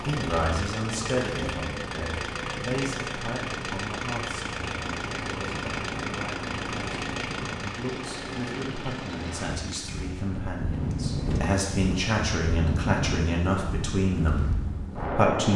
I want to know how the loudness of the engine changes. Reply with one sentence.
The volume of the engine goes down.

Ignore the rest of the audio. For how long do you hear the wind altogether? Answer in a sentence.
The wind can be heard for 11 seconds in total.